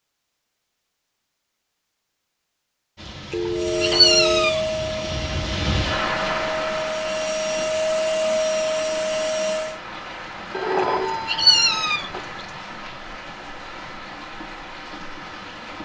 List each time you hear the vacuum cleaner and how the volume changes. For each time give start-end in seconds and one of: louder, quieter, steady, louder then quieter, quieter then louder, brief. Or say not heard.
3.5-9.8 quieter then louder.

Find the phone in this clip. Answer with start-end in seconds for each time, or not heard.
3.3-4.5, 10.5-12.2.